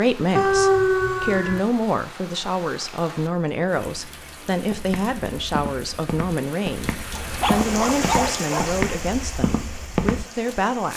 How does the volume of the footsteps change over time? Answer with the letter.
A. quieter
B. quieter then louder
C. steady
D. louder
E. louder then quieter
D.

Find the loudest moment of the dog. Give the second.
1 s.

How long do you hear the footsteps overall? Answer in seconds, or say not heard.
6 s.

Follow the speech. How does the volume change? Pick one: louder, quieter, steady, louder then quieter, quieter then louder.
steady.